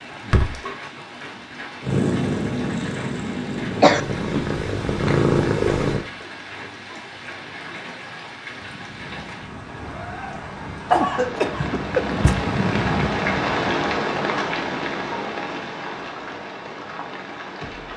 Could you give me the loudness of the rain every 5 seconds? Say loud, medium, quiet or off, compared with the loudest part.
medium, medium, loud, medium.